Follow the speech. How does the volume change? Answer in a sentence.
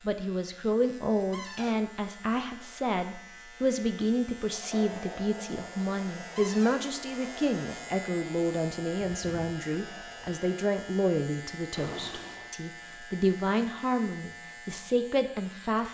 The loudness of the speech stays about the same.